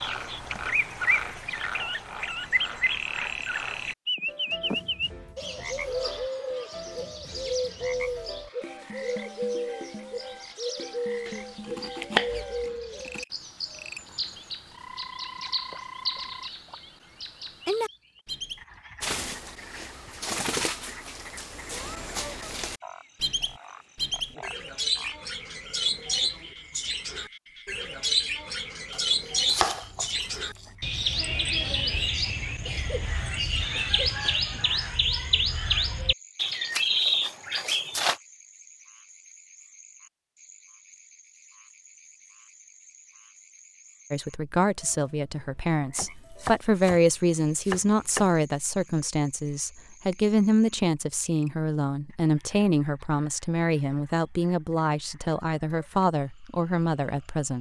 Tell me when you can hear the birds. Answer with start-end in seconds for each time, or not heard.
0.0-38.1.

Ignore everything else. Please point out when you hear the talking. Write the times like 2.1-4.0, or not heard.
44.1-57.5.